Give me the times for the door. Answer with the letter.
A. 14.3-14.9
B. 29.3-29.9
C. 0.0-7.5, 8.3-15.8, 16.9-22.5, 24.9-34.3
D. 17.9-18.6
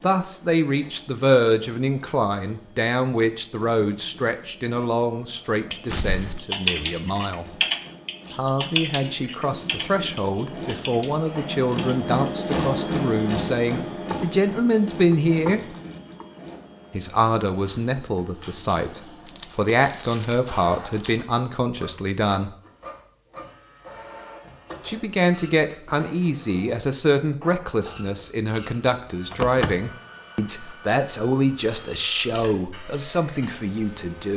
B.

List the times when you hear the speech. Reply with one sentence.
You can hear the speech from 0.0 to 7.5 s, from 8.3 to 15.8 s, from 16.9 to 22.5 s and from 24.9 to 34.3 s.